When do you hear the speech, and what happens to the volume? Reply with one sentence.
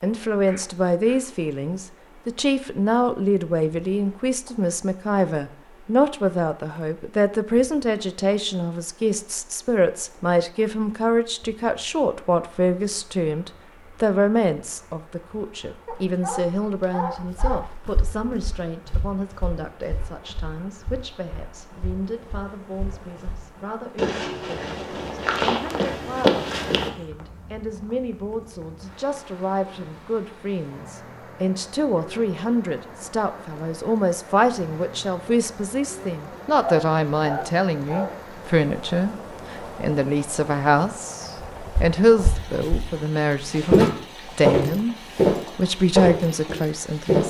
The speech can be heard from 0.0 to 45.0 s, getting quieter then louder; and briefly from 45.5 to 47.2 s.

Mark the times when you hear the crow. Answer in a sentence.
You can't hear the crow here.